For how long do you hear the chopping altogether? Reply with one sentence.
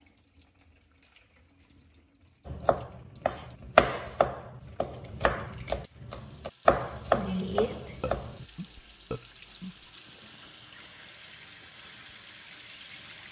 You can hear the chopping for 6 seconds altogether.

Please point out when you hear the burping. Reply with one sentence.
You can hear the burping from 8.0 to 9.8 s.